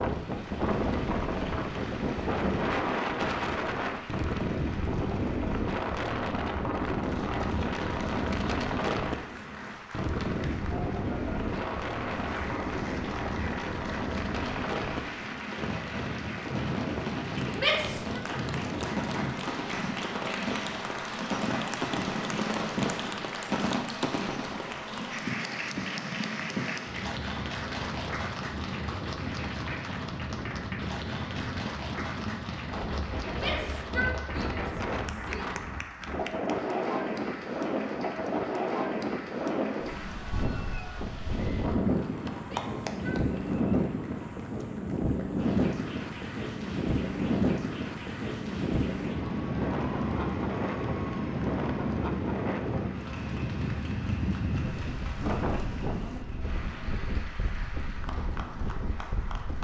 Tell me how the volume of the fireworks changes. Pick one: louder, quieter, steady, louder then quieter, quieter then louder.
louder.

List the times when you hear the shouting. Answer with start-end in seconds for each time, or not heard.
17.6-18.2, 33.4-35.5, 42.4-43.2.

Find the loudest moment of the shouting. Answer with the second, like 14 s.
18 s.